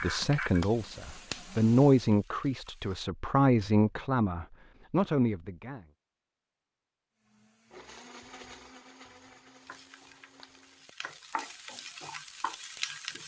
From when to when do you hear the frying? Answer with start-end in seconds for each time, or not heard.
0.0-3.0, 9.6-13.2.